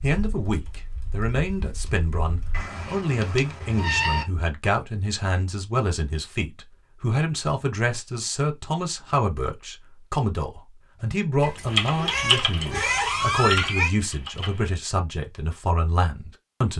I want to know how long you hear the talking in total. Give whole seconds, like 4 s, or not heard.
17 s.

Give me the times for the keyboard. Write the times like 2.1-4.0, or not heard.
0.0-2.7, 11.7-14.7.